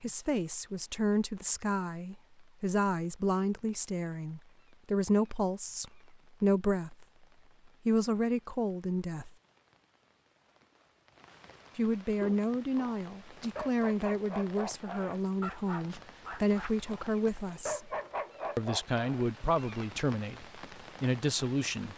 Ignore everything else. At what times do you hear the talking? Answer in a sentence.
The talking can be heard from 0.0 to 7.0 s, from 7.8 to 9.3 s, from 11.8 to 17.9 s and from 18.6 to 21.9 s.